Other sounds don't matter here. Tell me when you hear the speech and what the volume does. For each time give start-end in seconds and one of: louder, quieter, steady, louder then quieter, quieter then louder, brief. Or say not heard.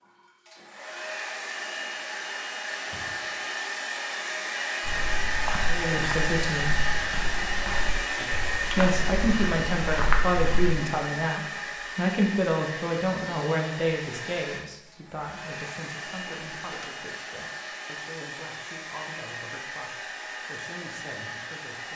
5.7-6.8 brief
8.8-21.9 quieter.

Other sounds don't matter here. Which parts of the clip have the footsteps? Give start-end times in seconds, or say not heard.
4.8-10.8.